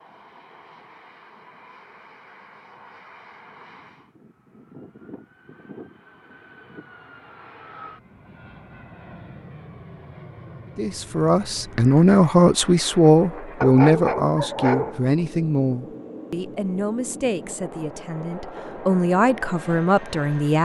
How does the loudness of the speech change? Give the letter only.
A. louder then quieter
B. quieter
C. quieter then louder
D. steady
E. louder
C.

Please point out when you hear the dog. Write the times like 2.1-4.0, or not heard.
13.6-15.1.